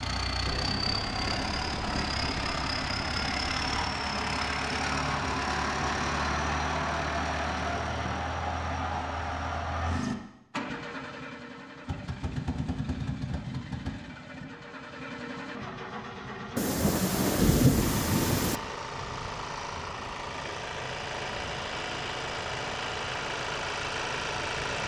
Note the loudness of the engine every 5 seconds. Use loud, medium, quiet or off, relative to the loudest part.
loud, loud, medium, medium, loud.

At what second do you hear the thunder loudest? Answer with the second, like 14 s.
18 s.